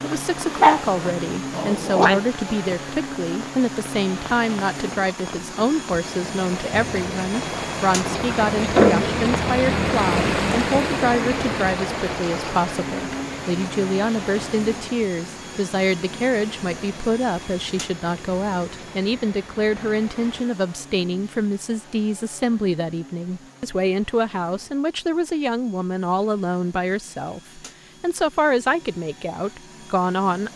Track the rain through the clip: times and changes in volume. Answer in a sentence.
The rain can be heard from 0.2 to 20.4 s, getting louder then quieter.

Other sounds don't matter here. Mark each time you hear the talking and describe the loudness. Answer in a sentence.
The talking can be heard from 0.0 to 30.5 s, at a steady volume.